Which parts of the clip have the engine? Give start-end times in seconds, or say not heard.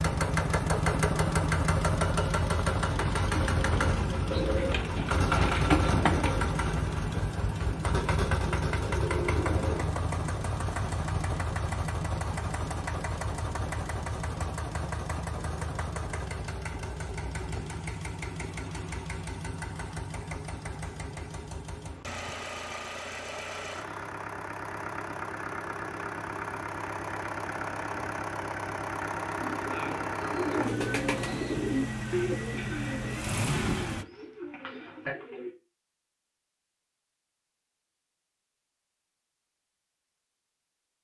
0.0-34.0.